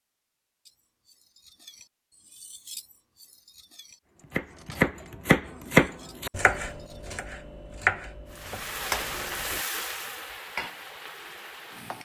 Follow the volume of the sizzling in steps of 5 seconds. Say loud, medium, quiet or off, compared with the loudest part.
off, loud, medium.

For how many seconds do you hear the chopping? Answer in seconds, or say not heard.
5 s.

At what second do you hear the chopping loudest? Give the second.
6 s.